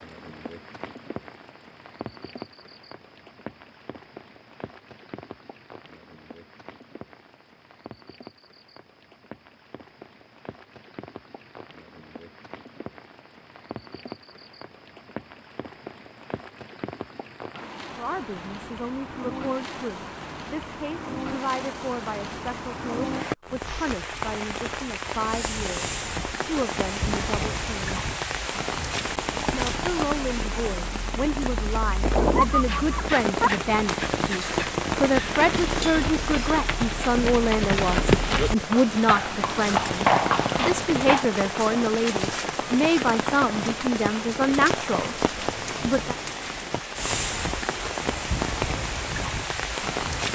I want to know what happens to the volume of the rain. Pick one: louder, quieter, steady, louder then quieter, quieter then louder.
louder.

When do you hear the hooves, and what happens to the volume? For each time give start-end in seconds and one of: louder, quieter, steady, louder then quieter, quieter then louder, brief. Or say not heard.
32.5-41.2 louder.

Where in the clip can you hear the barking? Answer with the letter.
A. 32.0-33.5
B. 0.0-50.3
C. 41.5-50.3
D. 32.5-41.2
A.